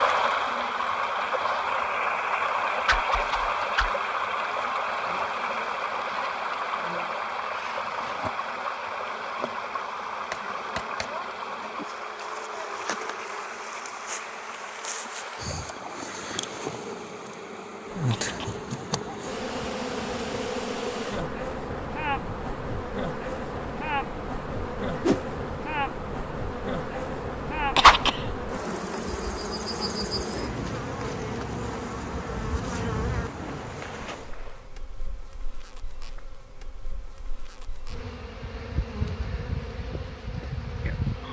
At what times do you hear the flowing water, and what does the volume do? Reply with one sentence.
You can hear the flowing water from 0.0 to 34.7 s, getting quieter.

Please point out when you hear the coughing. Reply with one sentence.
The coughing can be heard from 17.9 to 18.6 s and from 27.6 to 28.3 s.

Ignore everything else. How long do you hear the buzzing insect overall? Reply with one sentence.
You can hear the buzzing insect for 41 seconds altogether.